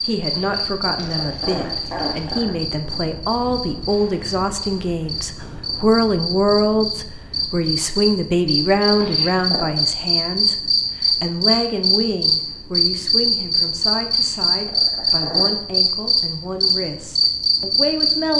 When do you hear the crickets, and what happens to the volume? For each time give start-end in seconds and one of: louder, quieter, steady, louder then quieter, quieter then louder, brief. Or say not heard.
0.0-18.3 louder.